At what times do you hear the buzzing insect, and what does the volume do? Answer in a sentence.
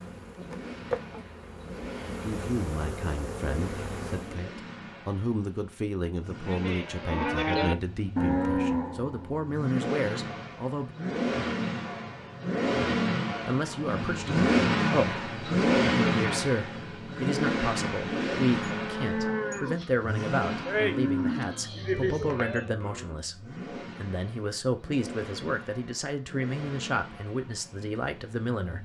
The buzzing insect can be heard from 0.0 to 4.4 s, getting quieter then louder.